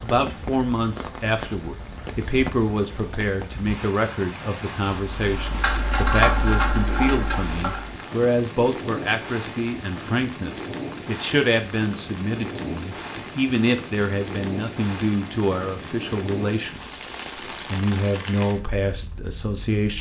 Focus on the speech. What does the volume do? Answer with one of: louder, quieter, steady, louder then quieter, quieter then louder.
steady.